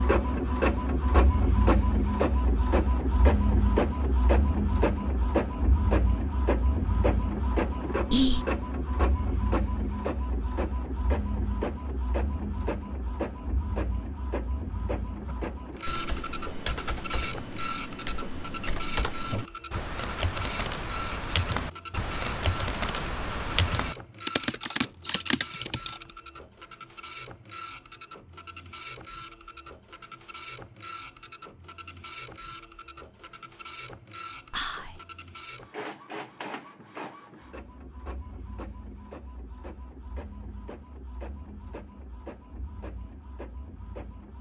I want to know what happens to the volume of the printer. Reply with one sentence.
The loudness of the printer goes down.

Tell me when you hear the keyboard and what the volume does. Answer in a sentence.
You can hear the keyboard from 15.2 to 26.1 s, getting louder.